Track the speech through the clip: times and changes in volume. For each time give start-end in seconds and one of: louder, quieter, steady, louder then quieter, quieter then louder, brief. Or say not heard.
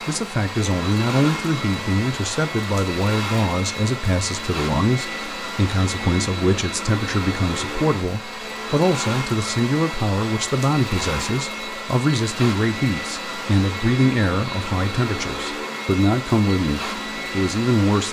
0.1-18.0 steady.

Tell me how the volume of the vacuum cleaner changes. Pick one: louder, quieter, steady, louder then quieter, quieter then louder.
steady.